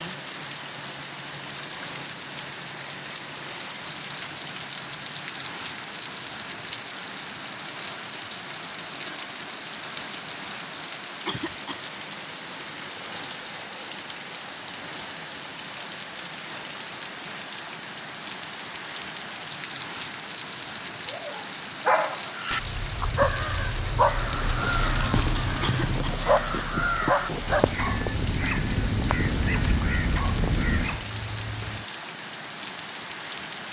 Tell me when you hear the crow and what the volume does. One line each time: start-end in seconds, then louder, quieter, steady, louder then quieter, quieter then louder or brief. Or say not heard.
22.3-31.1 louder.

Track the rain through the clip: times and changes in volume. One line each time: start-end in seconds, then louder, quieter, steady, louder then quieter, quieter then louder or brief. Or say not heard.
0.0-33.6 steady.